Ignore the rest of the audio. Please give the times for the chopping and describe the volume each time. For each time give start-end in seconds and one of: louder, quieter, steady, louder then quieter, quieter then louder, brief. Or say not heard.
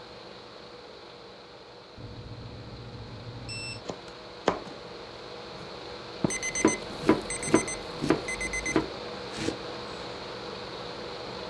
3.9-4.8 brief
5.5-10.2 quieter.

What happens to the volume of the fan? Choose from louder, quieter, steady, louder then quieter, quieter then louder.
louder.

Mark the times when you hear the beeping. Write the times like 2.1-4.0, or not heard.
1.9-3.9, 6.2-8.8.